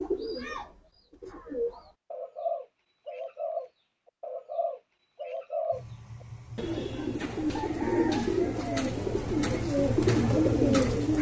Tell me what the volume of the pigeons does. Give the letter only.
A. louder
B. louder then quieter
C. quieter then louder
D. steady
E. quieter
A.